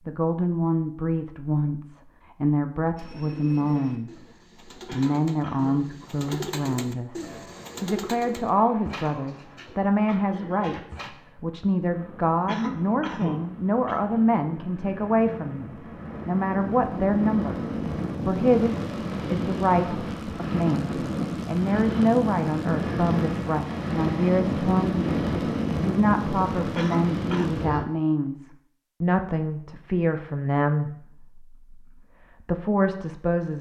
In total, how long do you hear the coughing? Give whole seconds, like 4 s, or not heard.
4 s.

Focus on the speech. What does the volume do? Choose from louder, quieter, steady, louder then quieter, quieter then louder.
steady.